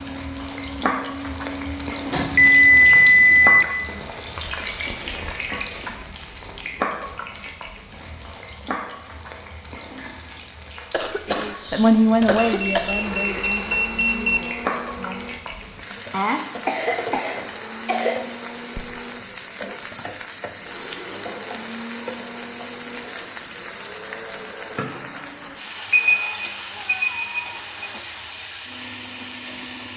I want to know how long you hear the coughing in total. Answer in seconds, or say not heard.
4 s.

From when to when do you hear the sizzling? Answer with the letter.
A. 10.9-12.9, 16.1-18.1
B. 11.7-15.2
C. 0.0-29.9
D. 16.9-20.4
C.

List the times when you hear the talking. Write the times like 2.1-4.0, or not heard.
11.7-15.2.